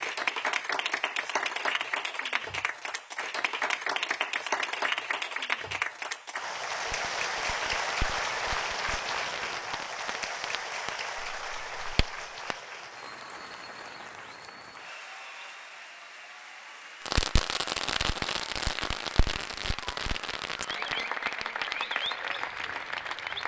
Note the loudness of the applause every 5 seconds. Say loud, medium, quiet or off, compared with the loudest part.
loud, loud, medium, quiet, loud.